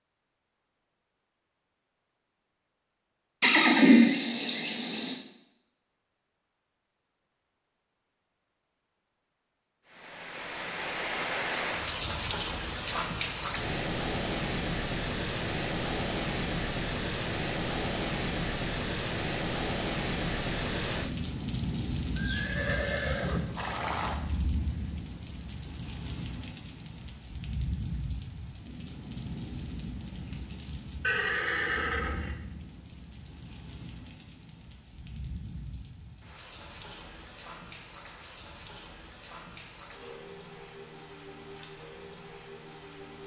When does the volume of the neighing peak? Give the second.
4 s.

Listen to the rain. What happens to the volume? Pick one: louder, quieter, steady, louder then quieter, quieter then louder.
quieter.